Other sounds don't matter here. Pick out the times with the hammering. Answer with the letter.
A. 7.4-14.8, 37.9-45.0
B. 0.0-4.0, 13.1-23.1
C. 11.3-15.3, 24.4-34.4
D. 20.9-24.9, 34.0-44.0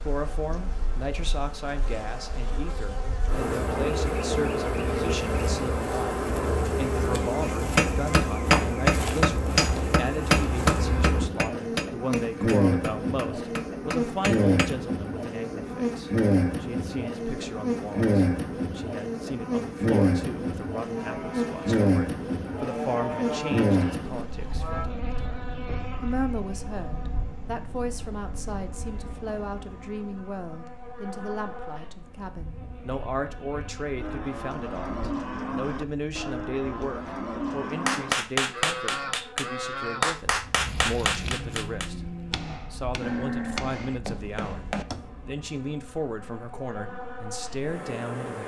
A.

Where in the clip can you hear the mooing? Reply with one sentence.
You can hear the mooing from 20.9 to 24.9 s and from 34.0 to 44.0 s.